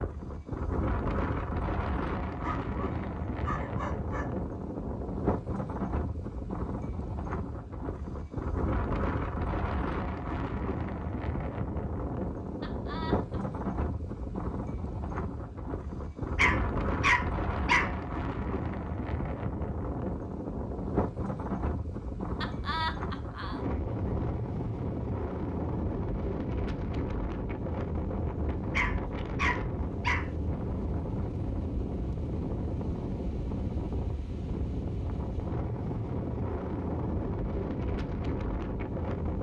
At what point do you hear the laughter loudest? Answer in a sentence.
The loudest moment of the laughter is at 23 seconds.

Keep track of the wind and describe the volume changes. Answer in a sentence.
The loudness of the wind stays about the same.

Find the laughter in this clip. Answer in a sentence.
The laughter can be heard from 12.6 to 13.4 s and from 22.4 to 23.6 s.